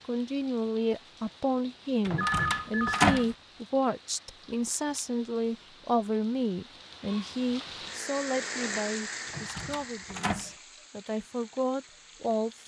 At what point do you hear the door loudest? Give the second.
3 s.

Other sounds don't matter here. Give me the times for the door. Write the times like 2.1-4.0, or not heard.
2.0-3.3, 9.2-10.5.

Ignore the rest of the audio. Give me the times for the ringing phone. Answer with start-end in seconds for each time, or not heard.
2.1-3.1.